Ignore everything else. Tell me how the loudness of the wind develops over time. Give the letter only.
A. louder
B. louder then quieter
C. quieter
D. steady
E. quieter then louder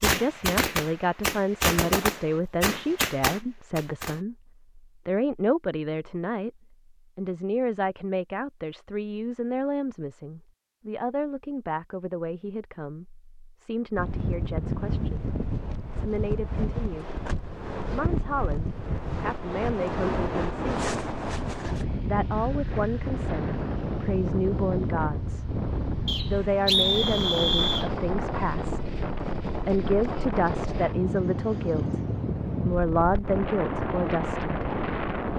D.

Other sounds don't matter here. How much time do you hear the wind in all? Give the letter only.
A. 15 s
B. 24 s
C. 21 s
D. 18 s
C.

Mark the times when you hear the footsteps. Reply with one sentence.
The footsteps can't be heard in this clip.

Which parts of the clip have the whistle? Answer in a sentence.
You can hear the whistle from 26.1 to 27.9 s.